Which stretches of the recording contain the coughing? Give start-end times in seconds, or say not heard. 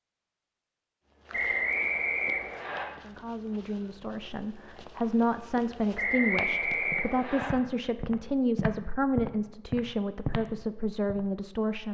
not heard.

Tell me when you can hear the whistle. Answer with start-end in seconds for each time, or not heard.
1.3-2.9, 6.0-7.5.